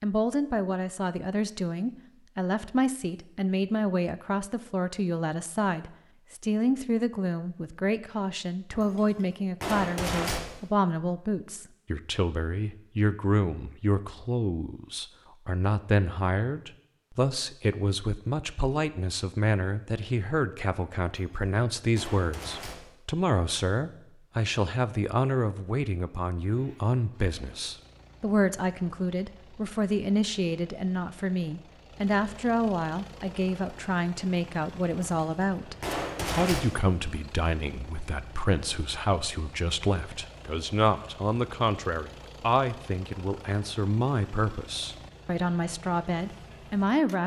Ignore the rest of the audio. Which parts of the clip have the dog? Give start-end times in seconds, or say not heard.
not heard.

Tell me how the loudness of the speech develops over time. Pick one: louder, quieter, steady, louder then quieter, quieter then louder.
steady.